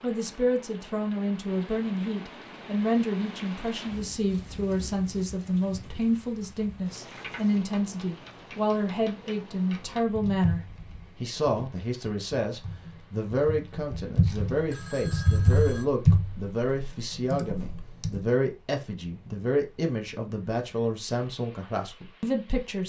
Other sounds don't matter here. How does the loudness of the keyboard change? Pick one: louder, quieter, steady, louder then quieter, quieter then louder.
louder.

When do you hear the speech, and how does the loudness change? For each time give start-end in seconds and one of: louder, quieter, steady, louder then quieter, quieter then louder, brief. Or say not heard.
0.0-22.8 steady.